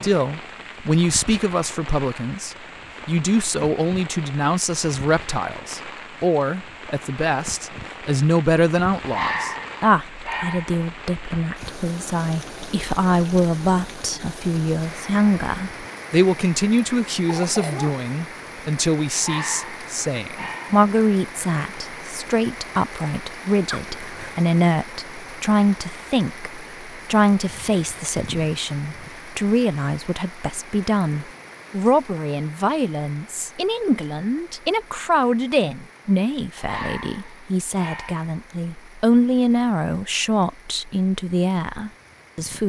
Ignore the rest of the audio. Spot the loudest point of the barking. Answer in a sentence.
The loudest moment of the barking is at 9 seconds.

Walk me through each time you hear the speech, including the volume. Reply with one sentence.
You can hear the speech from 0.0 to 42.6 s, at a steady volume.